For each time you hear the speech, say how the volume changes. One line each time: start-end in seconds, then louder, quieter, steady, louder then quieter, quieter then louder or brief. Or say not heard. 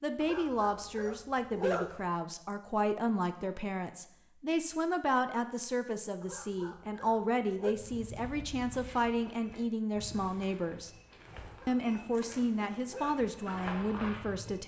0.0-10.9 steady
11.7-14.6 brief.